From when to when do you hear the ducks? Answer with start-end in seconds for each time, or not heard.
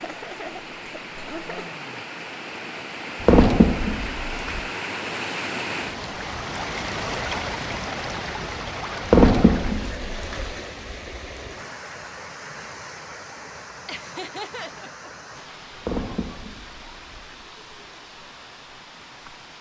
3.2-4.6, 9.1-10.6, 15.8-17.4.